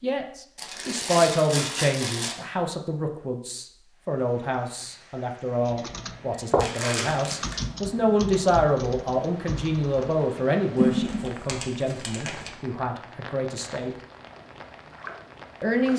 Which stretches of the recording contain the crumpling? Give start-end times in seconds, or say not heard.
0.6-2.4, 6.5-7.7, 10.8-12.5.